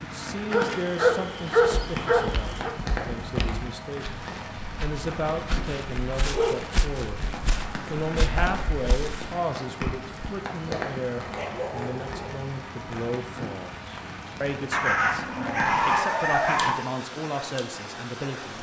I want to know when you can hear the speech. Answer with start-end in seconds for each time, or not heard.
0.0-7.2, 7.9-18.5.